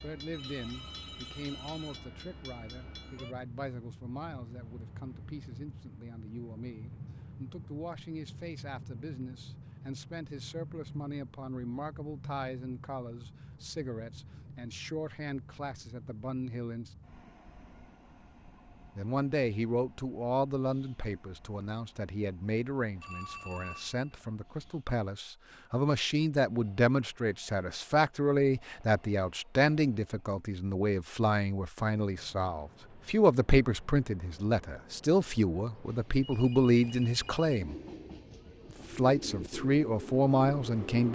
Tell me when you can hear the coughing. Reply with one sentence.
You can't hear the coughing here.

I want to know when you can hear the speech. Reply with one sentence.
The speech can be heard from 0.0 to 16.9 s, from 18.9 to 37.8 s and from 38.9 to 41.1 s.